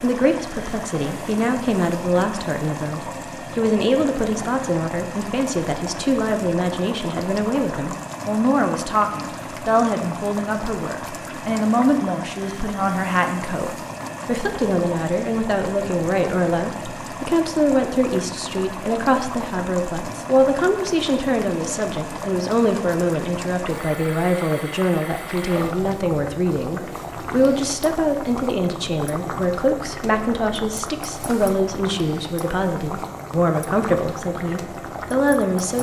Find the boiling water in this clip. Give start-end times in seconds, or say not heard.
0.0-35.7.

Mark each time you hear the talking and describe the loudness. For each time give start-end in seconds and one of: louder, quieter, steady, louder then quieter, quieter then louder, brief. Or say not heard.
0.0-35.7 steady.